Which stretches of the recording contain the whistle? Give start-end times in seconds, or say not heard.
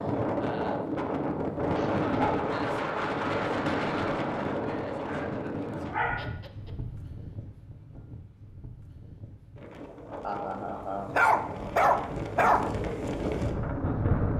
not heard.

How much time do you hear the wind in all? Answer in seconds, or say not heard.
14 s.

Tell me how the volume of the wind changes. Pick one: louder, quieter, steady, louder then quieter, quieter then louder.
quieter then louder.